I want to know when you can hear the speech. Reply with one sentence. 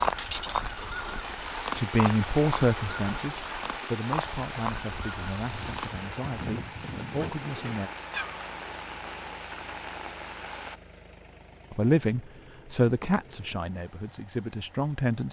The speech can be heard from 1.8 to 7.9 s and from 11.7 to 15.2 s.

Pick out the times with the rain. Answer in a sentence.
The rain can be heard from 0.0 to 10.8 s.